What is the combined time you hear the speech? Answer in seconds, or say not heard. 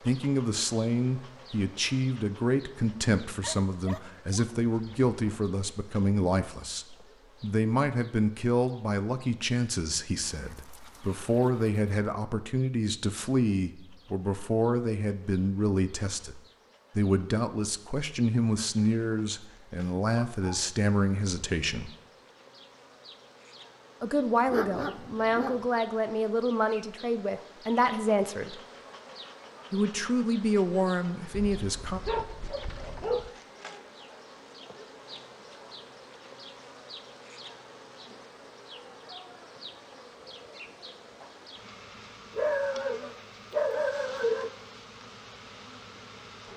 29 s.